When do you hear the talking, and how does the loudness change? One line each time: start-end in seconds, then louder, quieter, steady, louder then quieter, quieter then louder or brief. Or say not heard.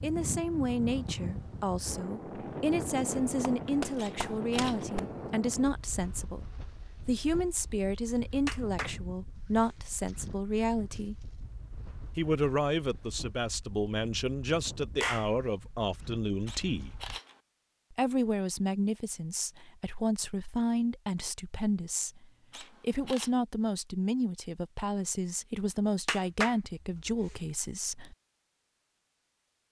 0.0-11.2 steady
12.2-17.0 steady
17.9-28.1 steady.